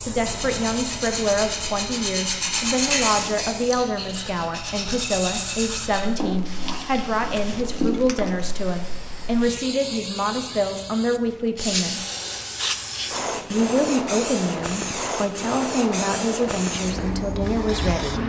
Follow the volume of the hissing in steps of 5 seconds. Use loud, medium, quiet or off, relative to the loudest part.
medium, medium, loud, loud.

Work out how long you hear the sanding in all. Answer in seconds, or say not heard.
8 s.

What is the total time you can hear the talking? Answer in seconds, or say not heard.
17 s.